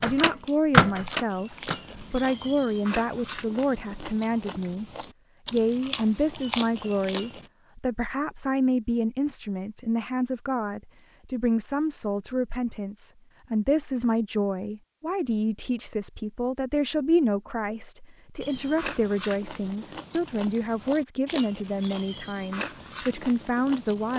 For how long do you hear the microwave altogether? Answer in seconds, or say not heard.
2 s.